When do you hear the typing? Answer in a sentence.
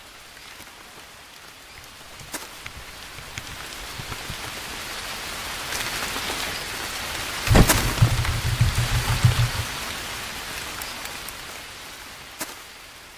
The typing can be heard from 1.8 to 4.5 s and from 7.5 to 9.7 s.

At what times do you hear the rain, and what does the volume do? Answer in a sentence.
The rain can be heard from 0.0 to 13.1 s, getting louder then quieter.